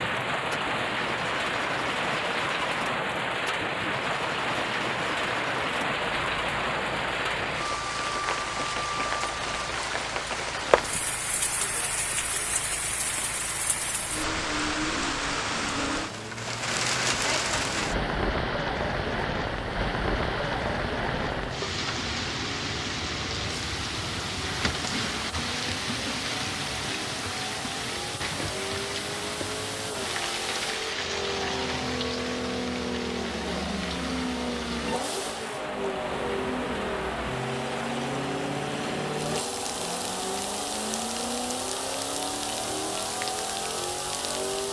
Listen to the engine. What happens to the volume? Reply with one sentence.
The volume of the engine goes up.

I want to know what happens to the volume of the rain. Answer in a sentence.
The volume of the rain goes down.